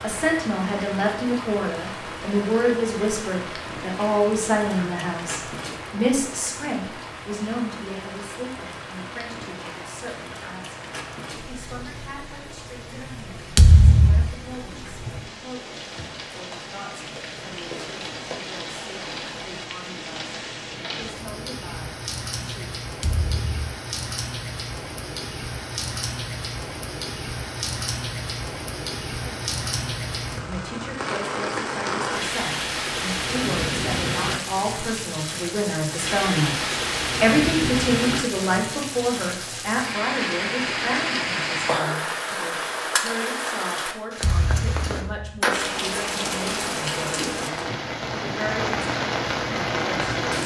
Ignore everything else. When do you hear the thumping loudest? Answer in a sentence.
The volume of the thumping peaks at 14 seconds.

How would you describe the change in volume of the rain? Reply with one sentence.
The loudness of the rain goes up.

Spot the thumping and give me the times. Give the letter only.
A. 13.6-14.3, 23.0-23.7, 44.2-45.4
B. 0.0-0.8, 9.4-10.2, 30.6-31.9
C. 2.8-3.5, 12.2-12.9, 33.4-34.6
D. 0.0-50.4
A.